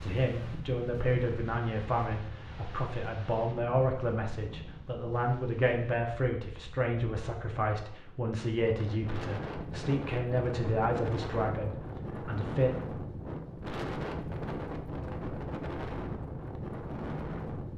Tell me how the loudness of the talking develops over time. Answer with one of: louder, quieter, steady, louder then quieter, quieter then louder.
steady.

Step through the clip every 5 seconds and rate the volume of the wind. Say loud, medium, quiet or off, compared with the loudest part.
medium, medium, loud, loud.